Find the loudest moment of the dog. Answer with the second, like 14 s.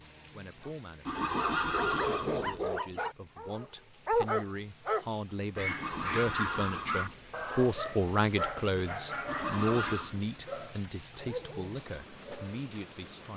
4 s.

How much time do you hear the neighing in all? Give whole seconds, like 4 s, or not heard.
4 s.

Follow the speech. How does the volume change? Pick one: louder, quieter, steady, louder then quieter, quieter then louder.
louder then quieter.